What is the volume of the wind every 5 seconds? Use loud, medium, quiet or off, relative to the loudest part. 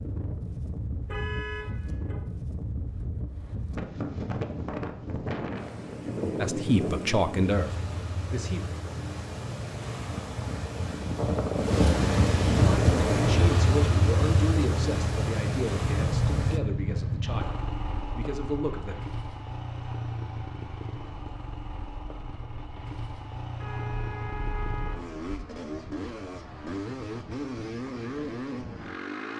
medium, medium, loud, medium, off, off.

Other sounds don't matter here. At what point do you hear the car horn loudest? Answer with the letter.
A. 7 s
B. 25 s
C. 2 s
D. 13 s
D.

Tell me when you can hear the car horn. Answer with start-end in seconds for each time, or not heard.
1.1-2.1, 12.7-13.5, 23.6-25.5.